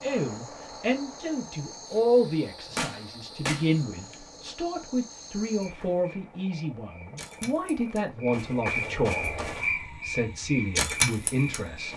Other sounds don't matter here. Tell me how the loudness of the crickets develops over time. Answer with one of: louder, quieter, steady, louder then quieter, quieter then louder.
louder.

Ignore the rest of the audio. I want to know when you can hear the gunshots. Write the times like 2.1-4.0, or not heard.
2.7-4.2.